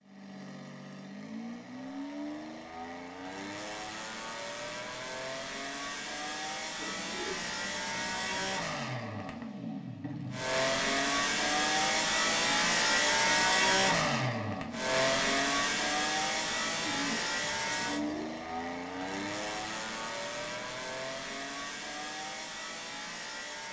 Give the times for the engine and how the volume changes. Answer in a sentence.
The engine can be heard from 0.0 to 23.6 s, getting louder then quieter.